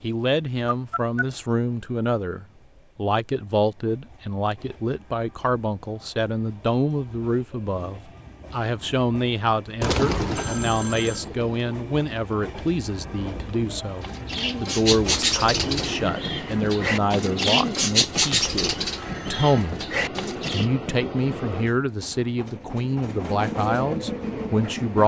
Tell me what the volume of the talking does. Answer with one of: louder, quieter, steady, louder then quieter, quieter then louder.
steady.